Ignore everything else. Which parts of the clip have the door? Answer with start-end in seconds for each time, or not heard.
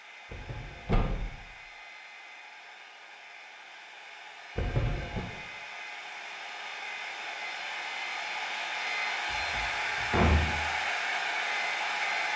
0.3-1.4, 4.5-5.2, 9.3-10.4.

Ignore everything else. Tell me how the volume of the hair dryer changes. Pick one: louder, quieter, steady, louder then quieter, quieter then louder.
louder.